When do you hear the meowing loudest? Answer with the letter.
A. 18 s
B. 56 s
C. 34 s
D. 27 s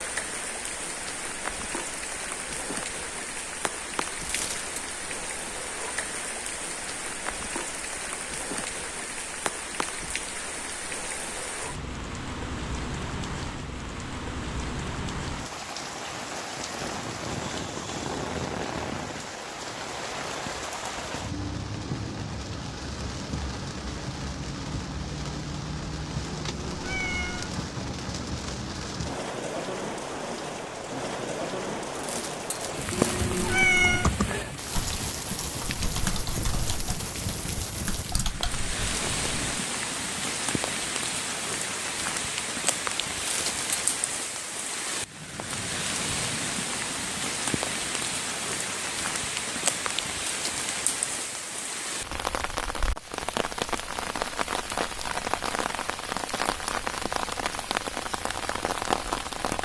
C.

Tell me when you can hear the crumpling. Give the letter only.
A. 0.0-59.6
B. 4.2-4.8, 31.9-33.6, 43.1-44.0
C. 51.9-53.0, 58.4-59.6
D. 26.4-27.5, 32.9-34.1
B.